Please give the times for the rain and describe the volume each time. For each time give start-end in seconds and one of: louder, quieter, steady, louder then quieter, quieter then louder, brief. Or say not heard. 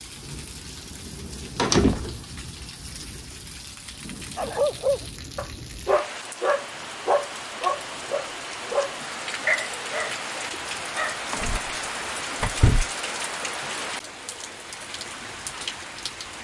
0.0-16.3 louder.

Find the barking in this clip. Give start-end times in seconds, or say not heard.
4.3-11.3.